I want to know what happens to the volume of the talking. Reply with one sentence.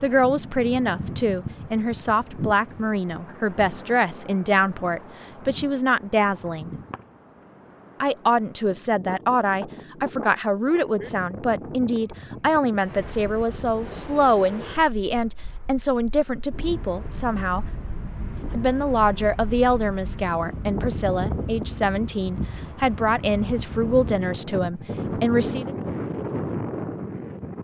The loudness of the talking stays about the same.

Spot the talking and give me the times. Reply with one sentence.
You can hear the talking from 0.0 to 6.8 s, from 8.0 to 17.6 s and from 18.4 to 25.8 s.